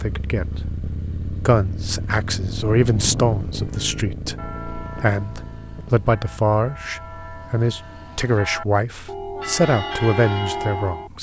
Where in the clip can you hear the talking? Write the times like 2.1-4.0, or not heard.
0.0-11.1.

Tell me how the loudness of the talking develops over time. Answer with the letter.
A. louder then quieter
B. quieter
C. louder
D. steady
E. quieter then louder
D.